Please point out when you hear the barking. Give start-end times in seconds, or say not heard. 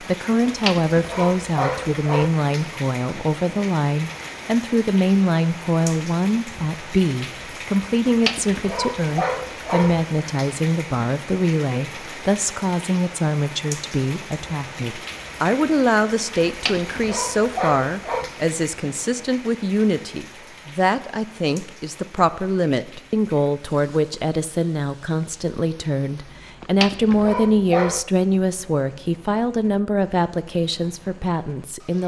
0.5-2.3, 8.1-10.1, 16.4-18.3, 26.6-28.1.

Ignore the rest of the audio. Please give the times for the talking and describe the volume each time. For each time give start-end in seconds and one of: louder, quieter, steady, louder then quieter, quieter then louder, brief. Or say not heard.
0.0-32.0 steady.